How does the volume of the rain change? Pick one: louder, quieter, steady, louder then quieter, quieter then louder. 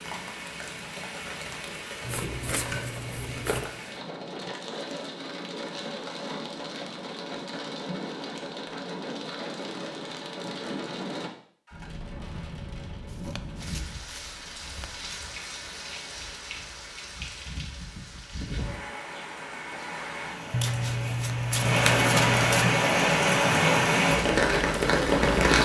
louder.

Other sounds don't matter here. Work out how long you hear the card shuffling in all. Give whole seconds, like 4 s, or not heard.
6 s.